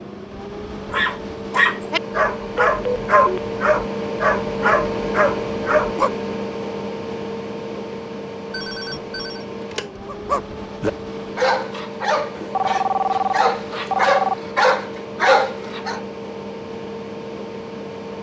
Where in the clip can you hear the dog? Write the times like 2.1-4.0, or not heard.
0.9-6.1, 10.1-16.0.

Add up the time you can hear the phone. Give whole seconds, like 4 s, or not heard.
4 s.